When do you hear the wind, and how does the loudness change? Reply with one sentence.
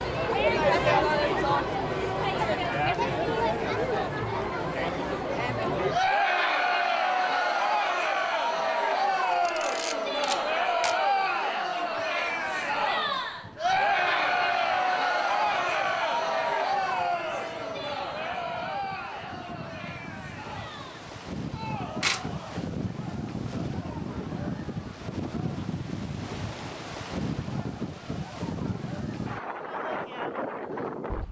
The wind can be heard from 12.2 to 31.2 s, getting louder.